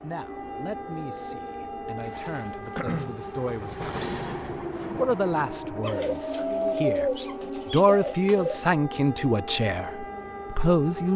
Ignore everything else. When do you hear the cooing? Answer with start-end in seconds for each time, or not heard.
2.0-3.2, 5.8-8.6.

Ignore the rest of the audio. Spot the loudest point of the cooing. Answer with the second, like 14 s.
7 s.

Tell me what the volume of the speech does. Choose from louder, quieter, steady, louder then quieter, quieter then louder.
louder.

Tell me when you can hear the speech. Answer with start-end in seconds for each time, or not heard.
0.0-3.9, 4.8-11.1.